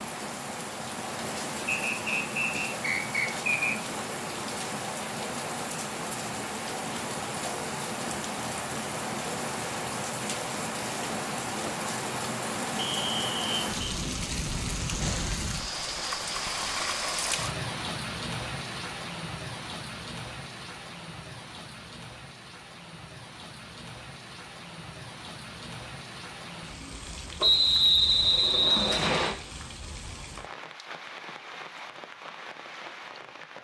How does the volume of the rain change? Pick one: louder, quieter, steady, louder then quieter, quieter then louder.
quieter.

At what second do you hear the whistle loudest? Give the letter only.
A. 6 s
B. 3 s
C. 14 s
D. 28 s
D.